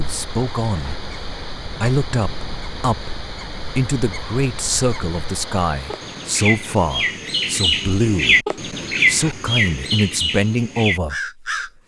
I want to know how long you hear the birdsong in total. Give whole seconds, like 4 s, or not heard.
12 s.